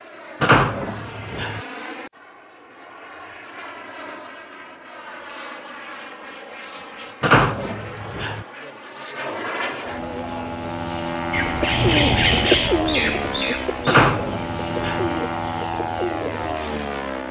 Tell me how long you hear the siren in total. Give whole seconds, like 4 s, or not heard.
not heard.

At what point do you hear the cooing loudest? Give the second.
12 s.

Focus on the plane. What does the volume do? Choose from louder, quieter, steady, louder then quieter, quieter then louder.
louder.